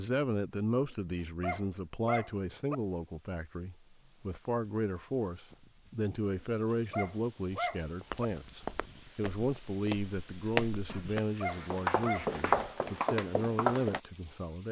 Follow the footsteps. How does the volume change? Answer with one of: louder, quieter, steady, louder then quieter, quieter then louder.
louder.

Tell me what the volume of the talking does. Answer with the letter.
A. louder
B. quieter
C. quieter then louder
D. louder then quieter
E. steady
E.